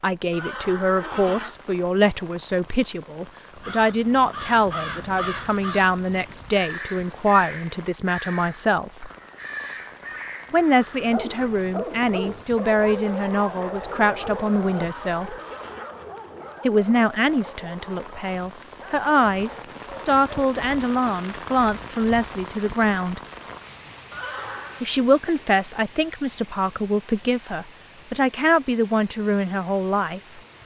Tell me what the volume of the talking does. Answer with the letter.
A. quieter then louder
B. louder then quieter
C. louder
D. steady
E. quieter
D.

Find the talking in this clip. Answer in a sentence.
The talking can be heard from 0.0 to 9.1 s, from 10.5 to 15.3 s, from 16.6 to 23.2 s and from 24.8 to 30.6 s.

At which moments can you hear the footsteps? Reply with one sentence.
The footsteps can't be heard in this clip.